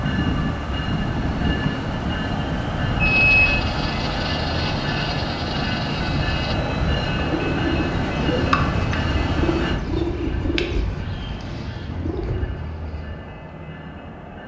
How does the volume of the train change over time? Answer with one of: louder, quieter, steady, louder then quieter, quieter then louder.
quieter.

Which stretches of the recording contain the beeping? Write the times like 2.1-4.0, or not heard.
2.9-3.6.